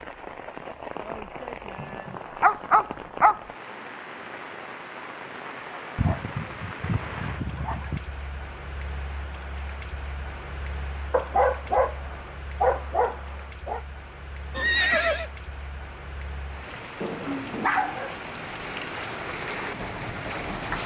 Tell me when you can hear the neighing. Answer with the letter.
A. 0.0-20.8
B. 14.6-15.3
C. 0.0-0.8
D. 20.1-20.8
B.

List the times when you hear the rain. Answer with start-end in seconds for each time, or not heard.
0.0-20.8.